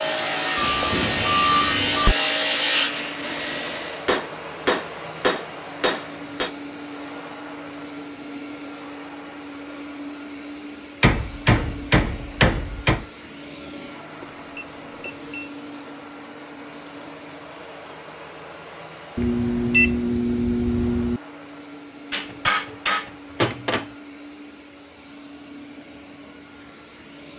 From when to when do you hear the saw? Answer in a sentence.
You can hear the saw from 0.0 to 4.0 s.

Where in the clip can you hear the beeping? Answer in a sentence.
You can hear the beeping from 0.6 to 2.1 s, from 14.2 to 15.5 s and from 19.1 to 21.2 s.